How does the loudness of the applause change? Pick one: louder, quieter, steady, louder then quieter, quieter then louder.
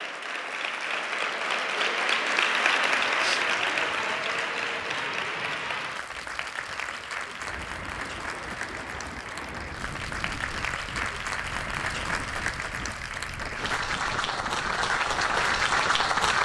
quieter then louder.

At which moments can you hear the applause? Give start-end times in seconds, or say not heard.
0.0-16.3.